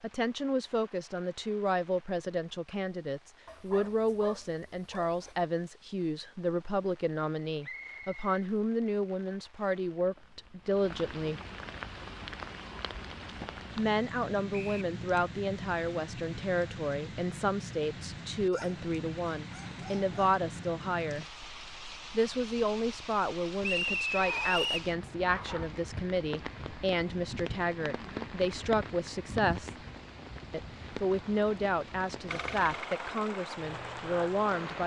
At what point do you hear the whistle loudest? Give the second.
24 s.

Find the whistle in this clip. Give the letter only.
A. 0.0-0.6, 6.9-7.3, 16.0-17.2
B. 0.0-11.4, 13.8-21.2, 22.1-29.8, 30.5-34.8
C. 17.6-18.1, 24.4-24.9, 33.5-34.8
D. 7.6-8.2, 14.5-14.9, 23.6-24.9
D.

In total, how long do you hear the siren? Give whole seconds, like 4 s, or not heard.
not heard.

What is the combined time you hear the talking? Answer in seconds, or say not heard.
31 s.